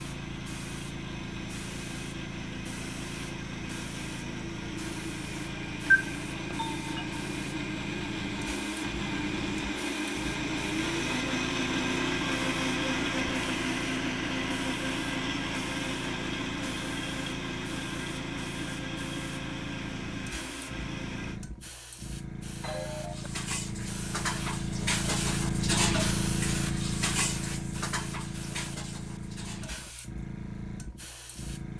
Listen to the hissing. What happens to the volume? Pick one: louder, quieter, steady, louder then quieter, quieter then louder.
louder.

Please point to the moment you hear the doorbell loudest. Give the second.
6 s.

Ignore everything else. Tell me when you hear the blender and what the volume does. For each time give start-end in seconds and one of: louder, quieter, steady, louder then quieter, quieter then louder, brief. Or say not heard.
0.0-21.4 louder then quieter.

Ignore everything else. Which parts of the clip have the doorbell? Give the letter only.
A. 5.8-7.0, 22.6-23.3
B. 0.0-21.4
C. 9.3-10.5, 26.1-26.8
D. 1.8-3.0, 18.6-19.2
A.